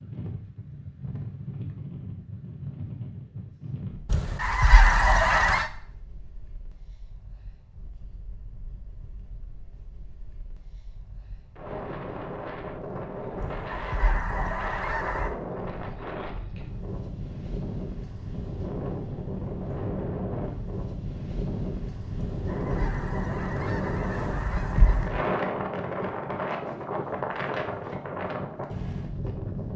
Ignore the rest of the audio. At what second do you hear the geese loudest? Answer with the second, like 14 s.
5 s.